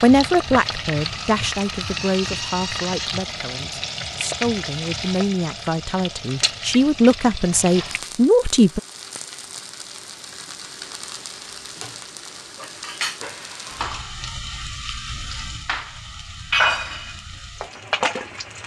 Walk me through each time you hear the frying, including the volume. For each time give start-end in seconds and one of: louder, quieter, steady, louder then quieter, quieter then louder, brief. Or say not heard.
0.0-18.6 quieter then louder.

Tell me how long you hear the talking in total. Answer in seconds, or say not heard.
9 s.